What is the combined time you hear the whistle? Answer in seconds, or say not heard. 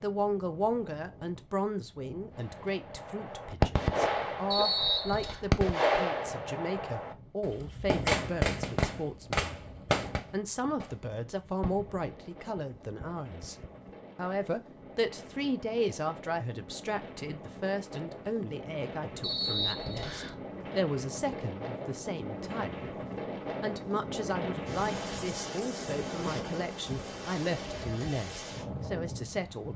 2 s.